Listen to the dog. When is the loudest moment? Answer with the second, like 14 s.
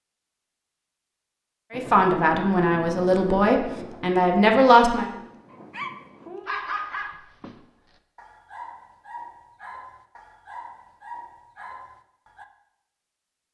7 s.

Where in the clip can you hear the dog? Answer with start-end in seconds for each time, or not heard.
5.5-12.4.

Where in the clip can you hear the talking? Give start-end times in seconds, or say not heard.
1.7-5.0.